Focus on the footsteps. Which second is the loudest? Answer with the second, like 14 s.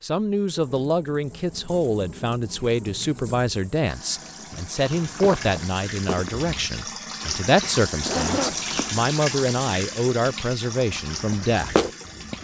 12 s.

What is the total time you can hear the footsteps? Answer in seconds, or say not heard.
3 s.